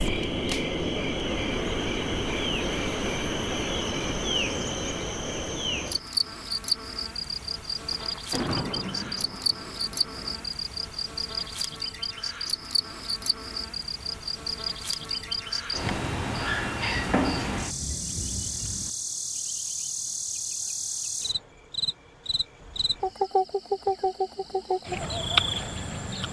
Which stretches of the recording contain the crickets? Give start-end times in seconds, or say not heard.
0.0-26.2.